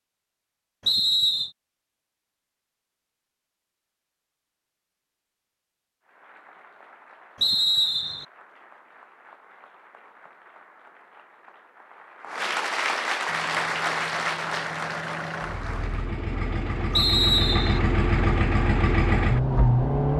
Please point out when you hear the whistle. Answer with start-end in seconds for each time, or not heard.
0.8-1.5, 7.4-8.2, 16.9-17.8.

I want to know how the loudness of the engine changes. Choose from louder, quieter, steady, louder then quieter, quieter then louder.
louder.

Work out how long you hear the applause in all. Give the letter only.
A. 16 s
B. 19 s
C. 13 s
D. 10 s
D.